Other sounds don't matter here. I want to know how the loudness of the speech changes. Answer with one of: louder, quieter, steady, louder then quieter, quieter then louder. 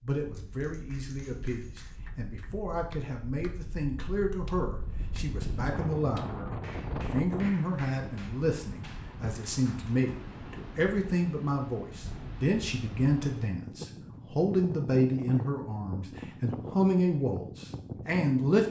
louder.